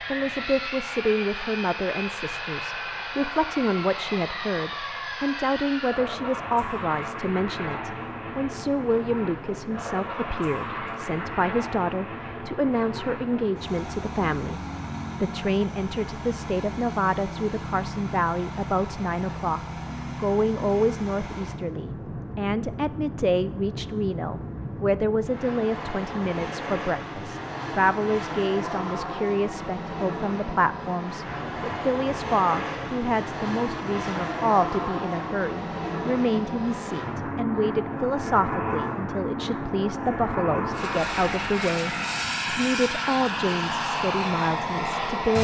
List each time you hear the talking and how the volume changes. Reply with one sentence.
The talking can be heard from 0.1 to 14.6 s, at a steady volume; and from 15.2 to 45.4 s, at a steady volume.